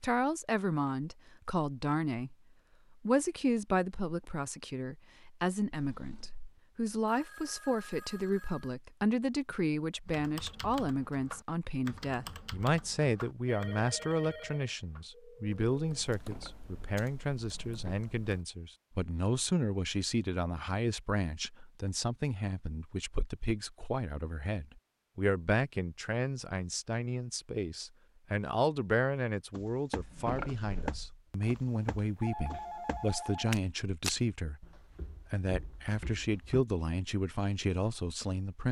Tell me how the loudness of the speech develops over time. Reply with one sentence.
The loudness of the speech stays about the same.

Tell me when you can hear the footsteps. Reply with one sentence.
You can hear the footsteps from 29.5 to 36.6 s.